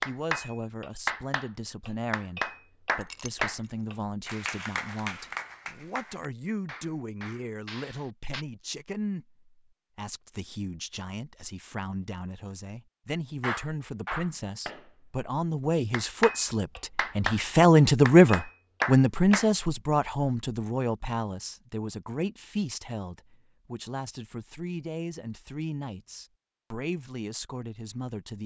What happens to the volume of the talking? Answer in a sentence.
The volume of the talking goes up, then down.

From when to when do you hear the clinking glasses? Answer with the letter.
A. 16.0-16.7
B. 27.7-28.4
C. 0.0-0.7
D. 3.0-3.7
D.